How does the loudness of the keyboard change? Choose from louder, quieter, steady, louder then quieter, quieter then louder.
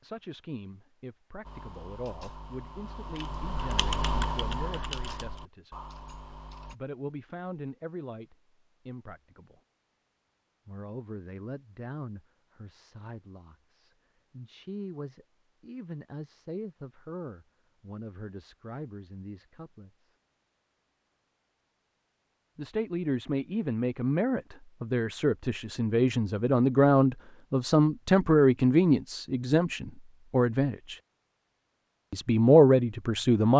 louder then quieter.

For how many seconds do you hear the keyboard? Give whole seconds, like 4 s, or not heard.
5 s.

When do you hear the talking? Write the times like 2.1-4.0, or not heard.
0.0-5.8, 6.7-9.6, 10.7-20.1, 22.6-30.9, 32.1-33.5.